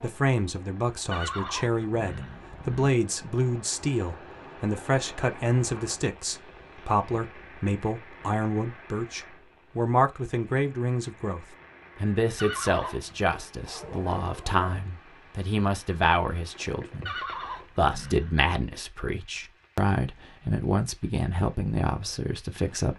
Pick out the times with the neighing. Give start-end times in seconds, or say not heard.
1.1-3.0, 12.3-13.3, 17.1-18.4.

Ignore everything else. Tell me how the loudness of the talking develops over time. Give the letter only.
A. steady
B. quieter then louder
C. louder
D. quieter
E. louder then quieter
A.